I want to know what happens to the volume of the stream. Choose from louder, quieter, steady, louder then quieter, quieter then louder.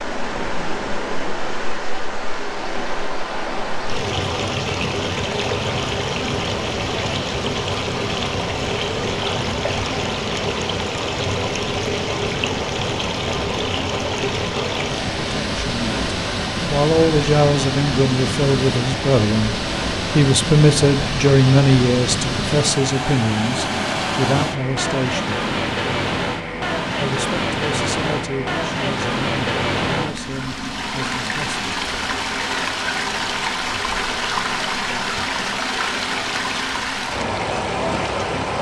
steady.